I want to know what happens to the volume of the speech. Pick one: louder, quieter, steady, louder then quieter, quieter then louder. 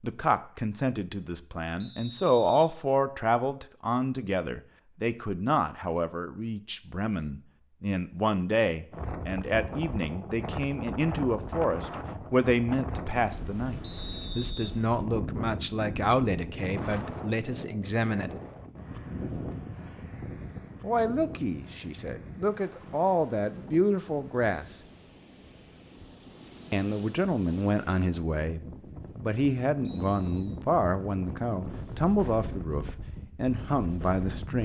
steady.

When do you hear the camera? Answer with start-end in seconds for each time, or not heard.
not heard.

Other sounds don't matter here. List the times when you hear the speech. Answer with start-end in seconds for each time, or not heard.
0.0-18.3, 20.8-24.8, 26.7-34.5.